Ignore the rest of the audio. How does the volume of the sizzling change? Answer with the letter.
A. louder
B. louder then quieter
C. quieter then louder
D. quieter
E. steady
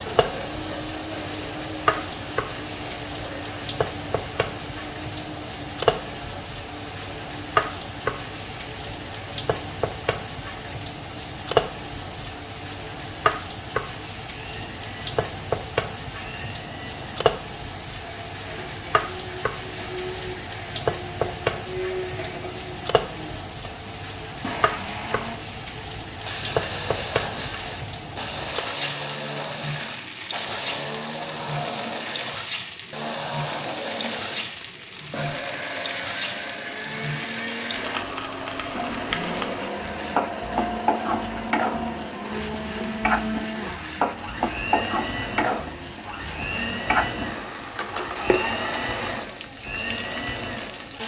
E.